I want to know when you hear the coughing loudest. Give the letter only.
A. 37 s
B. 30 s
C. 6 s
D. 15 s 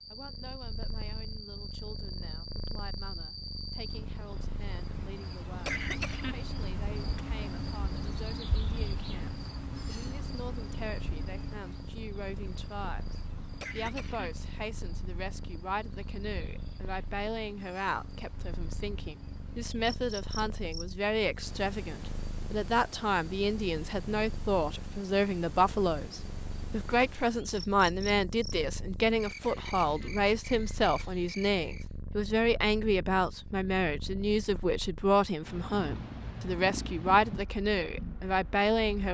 C.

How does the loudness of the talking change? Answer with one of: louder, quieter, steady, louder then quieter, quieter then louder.
louder.